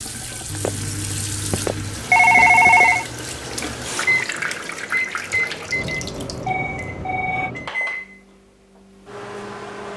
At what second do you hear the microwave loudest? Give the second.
5 s.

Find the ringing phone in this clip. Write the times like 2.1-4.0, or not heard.
0.7-3.0, 6.5-7.5.